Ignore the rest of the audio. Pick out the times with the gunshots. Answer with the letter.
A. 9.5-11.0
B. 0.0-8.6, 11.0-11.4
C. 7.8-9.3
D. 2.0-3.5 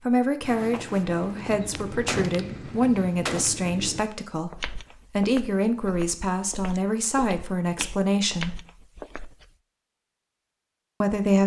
D.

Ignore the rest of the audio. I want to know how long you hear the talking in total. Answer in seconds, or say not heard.
9 s.